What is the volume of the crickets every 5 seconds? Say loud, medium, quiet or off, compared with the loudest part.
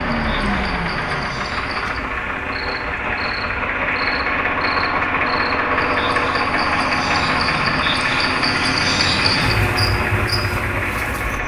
medium, loud, loud.